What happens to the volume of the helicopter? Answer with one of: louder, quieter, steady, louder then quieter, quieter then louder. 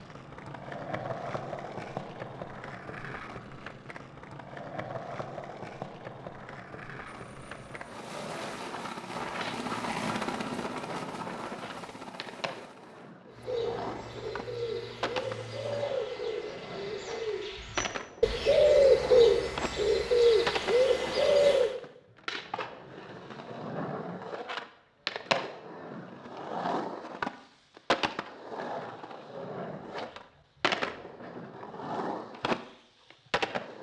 louder then quieter.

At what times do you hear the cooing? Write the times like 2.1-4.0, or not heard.
13.2-21.7.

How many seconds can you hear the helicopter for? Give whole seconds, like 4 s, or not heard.
9 s.